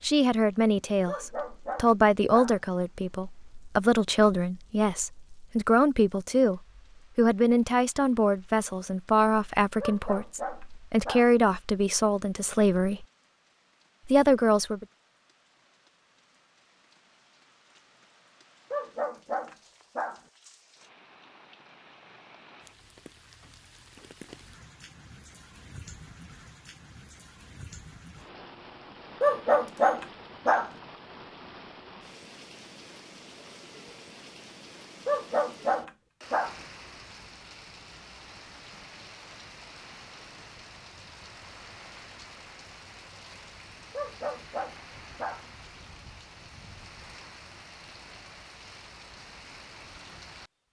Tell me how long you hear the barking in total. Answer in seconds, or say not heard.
9 s.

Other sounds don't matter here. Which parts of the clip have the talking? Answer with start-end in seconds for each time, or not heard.
0.0-13.1, 14.1-14.8.